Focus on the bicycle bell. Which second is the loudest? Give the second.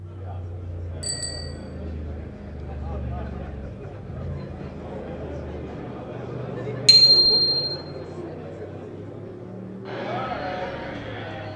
7 s.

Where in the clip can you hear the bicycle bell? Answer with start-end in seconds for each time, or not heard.
1.0-1.6, 6.8-7.5.